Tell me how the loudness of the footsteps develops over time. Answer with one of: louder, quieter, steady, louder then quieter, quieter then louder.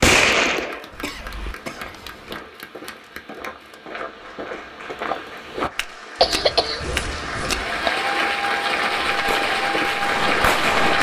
louder.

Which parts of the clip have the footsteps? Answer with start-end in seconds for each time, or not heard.
1.6-10.9.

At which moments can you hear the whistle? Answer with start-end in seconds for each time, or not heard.
not heard.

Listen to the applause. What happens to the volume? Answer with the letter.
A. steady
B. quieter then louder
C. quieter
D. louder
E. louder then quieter
D.